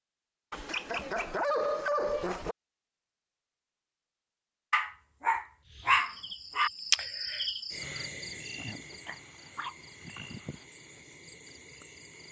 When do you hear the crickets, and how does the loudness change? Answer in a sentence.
The crickets can be heard from 5.7 to 12.2 s, getting quieter.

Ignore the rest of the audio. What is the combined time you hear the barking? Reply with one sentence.
The barking can be heard for 6 seconds in total.